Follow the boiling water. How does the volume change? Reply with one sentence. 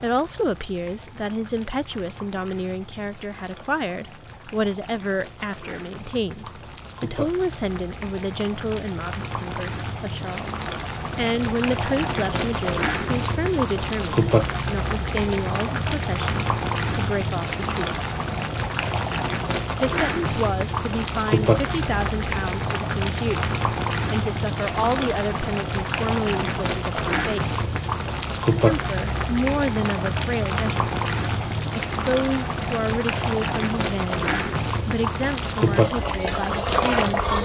The loudness of the boiling water goes up.